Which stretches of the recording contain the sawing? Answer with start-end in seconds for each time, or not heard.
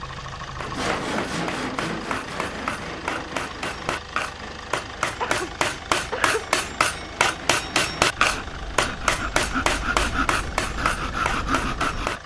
0.6-12.2.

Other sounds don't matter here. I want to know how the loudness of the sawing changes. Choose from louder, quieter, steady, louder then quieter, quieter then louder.
quieter then louder.